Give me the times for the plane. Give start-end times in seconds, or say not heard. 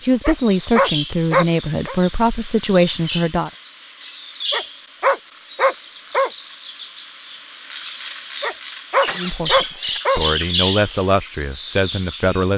not heard.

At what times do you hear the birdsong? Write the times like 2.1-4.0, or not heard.
0.0-12.5.